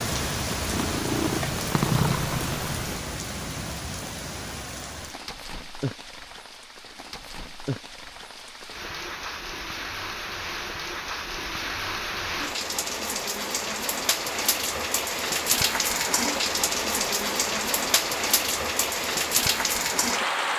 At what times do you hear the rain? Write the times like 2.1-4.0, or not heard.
0.0-20.5.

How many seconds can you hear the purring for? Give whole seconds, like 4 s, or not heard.
3 s.